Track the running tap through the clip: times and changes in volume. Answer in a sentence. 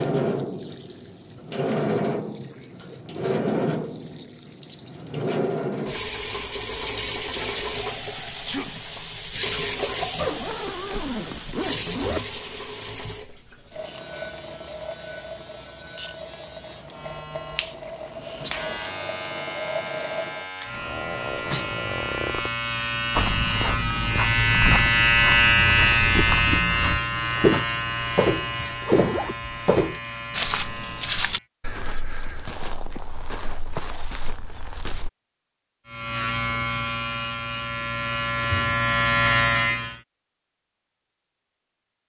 The running tap can be heard from 0.0 to 20.5 s, getting quieter.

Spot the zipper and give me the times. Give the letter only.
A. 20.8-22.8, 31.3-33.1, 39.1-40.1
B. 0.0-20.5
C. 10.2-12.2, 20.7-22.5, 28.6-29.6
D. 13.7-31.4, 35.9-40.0
C.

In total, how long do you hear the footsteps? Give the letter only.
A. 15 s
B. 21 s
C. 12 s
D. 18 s
C.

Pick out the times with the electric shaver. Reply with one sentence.
You can hear the electric shaver from 13.7 to 31.4 s and from 35.9 to 40.0 s.